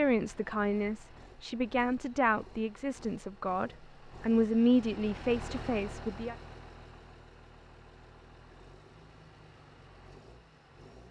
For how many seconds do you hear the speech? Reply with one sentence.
The speech can be heard for 6 seconds in total.